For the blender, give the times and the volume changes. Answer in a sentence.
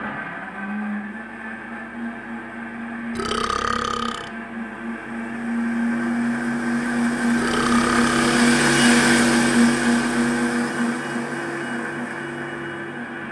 The blender can be heard from 0.0 to 13.2 s, getting louder then quieter.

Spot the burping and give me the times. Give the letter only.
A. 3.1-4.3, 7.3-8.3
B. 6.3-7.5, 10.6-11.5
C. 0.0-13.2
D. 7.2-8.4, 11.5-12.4
A.